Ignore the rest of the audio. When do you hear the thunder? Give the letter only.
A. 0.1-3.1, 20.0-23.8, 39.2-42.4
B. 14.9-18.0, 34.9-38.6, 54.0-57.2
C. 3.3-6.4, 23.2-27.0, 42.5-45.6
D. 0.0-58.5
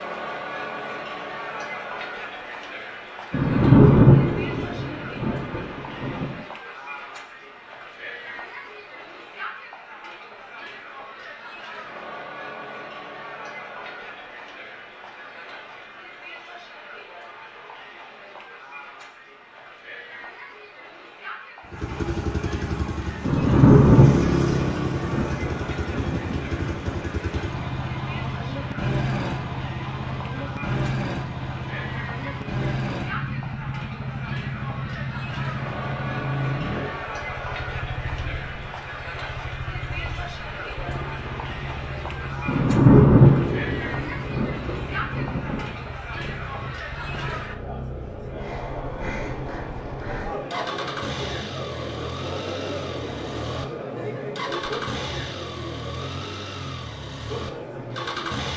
C.